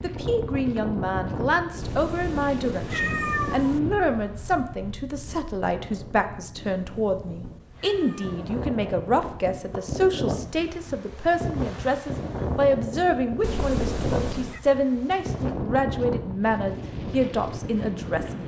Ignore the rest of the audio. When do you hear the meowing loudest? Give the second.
3 s.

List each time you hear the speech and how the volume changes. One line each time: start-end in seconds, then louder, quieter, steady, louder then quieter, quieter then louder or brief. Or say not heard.
0.0-18.4 steady.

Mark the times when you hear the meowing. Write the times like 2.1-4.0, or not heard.
1.8-3.8, 7.0-8.4, 13.4-14.6.